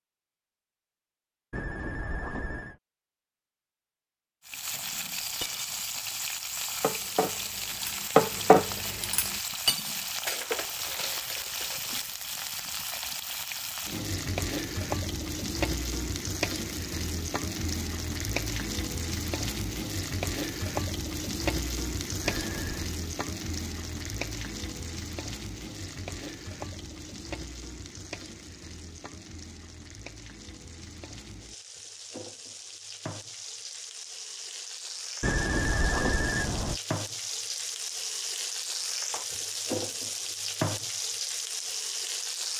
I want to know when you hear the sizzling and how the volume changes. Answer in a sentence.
The sizzling can be heard from 4.5 to 42.5 s, getting quieter then louder.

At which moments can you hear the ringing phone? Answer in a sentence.
The ringing phone can be heard from 1.5 to 2.8 s, from 22.2 to 22.9 s and from 35.2 to 36.8 s.